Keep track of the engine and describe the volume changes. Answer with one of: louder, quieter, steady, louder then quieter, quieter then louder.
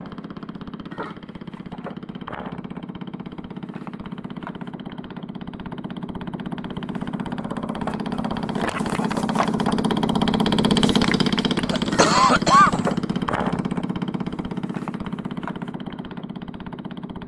louder then quieter.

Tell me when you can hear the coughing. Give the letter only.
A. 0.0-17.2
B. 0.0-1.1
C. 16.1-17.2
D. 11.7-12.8
D.